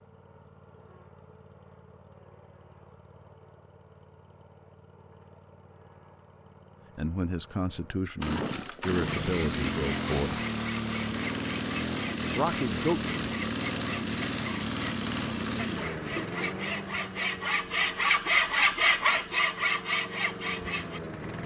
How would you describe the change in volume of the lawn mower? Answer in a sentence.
The loudness of the lawn mower goes up, then down.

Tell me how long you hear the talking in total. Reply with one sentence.
You can hear the talking for 4 seconds altogether.